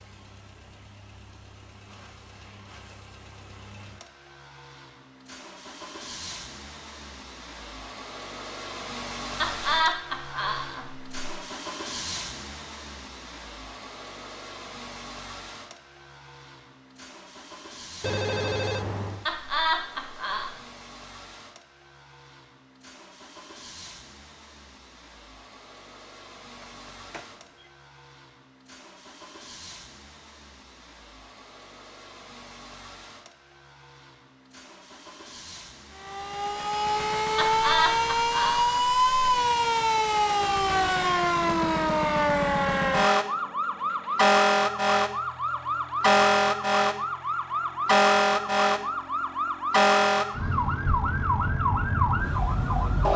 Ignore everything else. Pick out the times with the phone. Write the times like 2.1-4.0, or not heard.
18.0-19.2, 26.6-27.7.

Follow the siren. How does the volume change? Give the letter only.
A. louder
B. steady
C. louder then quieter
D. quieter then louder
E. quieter
B.